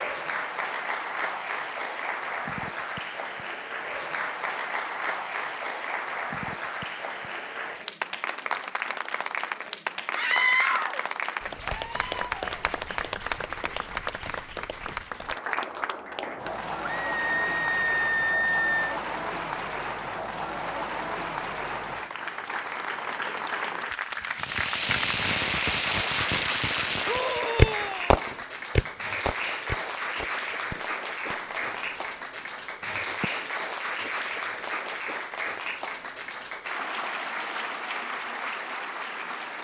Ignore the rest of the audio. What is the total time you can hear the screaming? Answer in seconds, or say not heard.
4 s.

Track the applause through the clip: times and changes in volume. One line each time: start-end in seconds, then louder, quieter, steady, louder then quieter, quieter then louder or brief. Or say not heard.
0.0-39.6 steady.